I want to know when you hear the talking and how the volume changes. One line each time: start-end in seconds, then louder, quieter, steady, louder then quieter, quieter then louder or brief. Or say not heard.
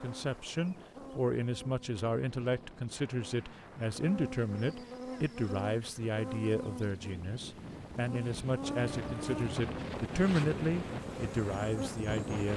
0.0-12.5 steady.